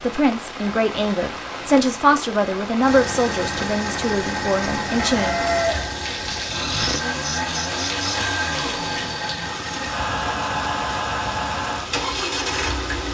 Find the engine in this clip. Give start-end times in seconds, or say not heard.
2.8-13.0.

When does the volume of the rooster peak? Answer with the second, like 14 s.
6 s.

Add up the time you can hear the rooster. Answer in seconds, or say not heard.
2 s.